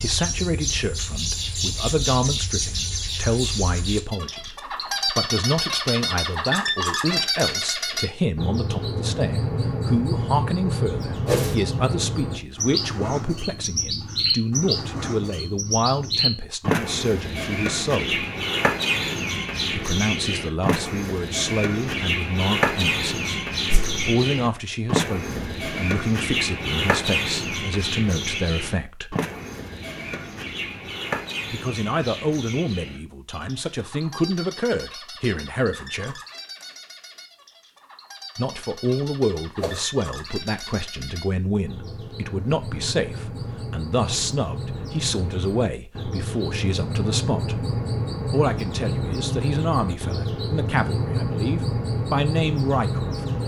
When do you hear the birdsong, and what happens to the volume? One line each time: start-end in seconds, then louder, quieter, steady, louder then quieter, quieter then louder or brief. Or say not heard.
0.0-53.4 quieter then louder.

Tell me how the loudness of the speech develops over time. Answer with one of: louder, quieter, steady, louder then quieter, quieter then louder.
steady.